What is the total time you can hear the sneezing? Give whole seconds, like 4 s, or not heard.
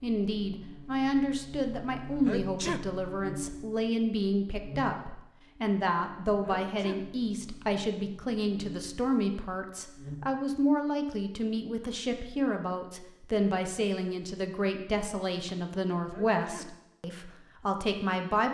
2 s.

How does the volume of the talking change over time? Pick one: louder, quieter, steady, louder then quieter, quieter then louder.
steady.